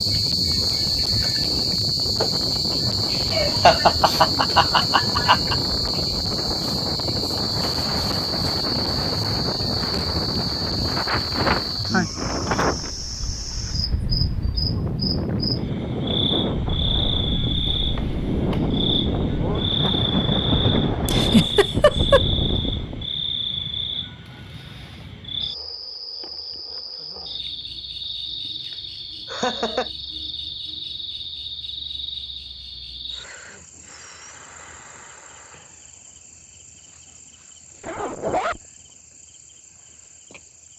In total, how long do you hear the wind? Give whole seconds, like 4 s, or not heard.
23 s.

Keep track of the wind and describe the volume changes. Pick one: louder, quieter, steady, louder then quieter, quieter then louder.
louder.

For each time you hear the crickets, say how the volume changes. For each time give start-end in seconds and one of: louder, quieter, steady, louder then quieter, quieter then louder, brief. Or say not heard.
0.0-40.7 quieter.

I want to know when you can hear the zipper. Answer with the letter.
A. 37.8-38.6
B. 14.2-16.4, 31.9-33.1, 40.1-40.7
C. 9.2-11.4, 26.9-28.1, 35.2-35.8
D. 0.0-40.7
A.